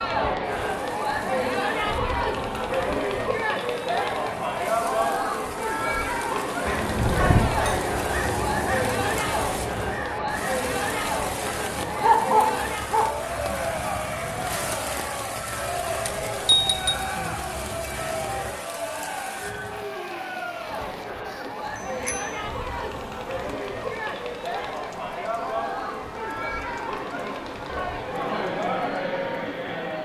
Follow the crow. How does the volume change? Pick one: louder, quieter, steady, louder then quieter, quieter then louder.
quieter.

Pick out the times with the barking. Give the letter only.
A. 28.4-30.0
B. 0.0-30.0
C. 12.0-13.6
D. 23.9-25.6
C.